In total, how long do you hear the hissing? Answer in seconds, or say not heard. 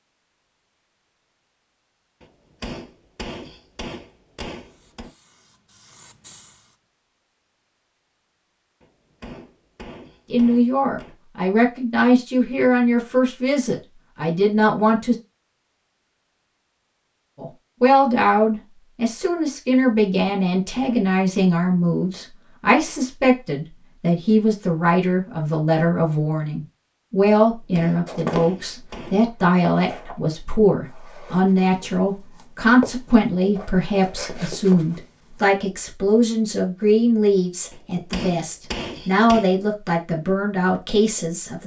2 s.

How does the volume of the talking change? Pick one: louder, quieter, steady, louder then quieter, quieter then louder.
steady.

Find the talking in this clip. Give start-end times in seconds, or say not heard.
10.3-15.2, 17.4-41.6.